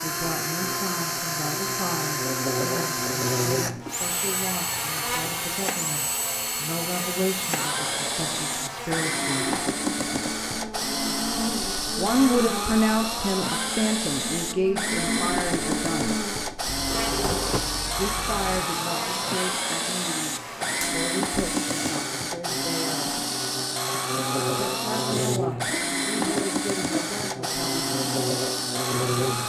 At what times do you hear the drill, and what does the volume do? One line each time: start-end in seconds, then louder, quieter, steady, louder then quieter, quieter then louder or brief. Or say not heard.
0.0-29.4 steady.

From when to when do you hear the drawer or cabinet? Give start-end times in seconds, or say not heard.
16.6-18.6.